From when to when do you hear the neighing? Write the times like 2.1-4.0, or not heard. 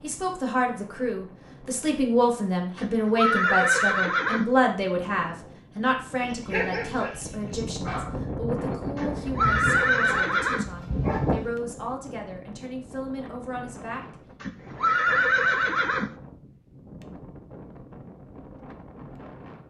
2.8-4.5, 8.9-10.7, 14.4-16.1.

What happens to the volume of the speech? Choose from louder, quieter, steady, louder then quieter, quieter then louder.
quieter.